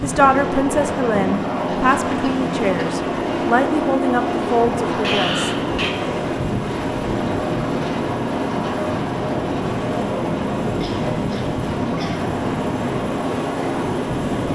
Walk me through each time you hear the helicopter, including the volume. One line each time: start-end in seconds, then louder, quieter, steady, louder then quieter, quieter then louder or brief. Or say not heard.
0.0-14.4 steady.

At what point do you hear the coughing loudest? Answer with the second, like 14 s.
5 s.